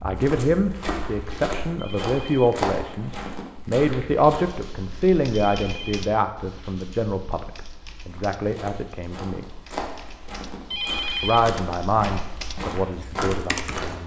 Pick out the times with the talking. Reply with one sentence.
The talking can be heard from 0.0 to 9.4 s and from 11.2 to 14.0 s.